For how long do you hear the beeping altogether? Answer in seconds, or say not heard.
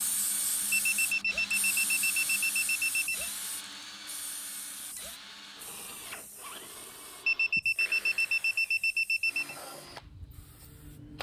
5 s.